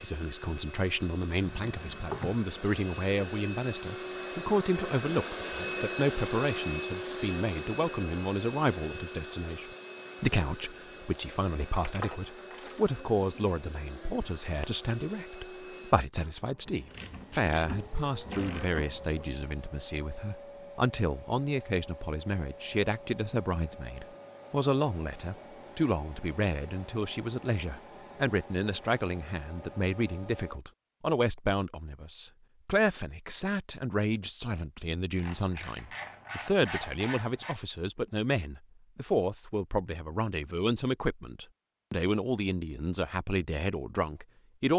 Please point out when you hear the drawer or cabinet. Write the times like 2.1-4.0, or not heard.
1.4-2.4.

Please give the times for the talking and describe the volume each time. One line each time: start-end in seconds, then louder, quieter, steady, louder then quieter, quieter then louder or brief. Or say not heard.
0.0-44.7 steady.